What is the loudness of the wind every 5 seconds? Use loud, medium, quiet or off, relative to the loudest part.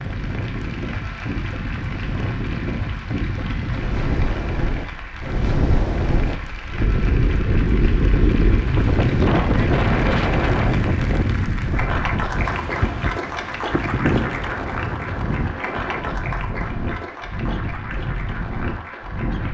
medium, loud, loud, medium.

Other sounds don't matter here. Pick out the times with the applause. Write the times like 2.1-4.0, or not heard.
0.0-19.4.